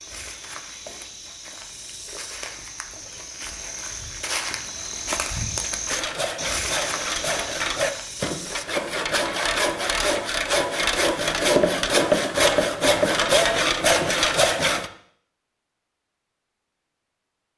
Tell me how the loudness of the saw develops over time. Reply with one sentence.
The loudness of the saw goes up.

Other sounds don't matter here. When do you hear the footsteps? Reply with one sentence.
The footsteps can be heard from 0.0 to 8.7 s.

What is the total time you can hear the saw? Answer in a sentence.
You can hear the saw for 9 seconds altogether.